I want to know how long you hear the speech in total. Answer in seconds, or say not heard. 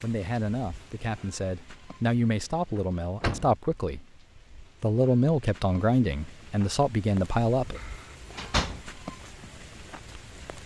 7 s.